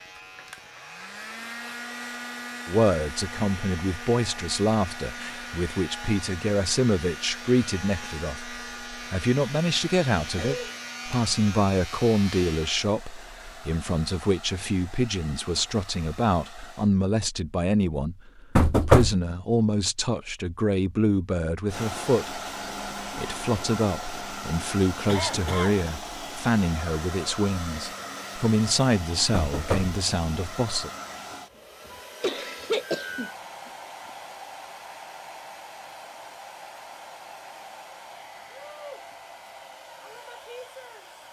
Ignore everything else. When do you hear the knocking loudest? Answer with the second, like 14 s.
19 s.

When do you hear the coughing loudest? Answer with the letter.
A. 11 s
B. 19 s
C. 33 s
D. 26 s
C.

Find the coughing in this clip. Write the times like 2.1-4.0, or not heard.
10.3-10.8, 25.1-25.8, 32.2-34.1.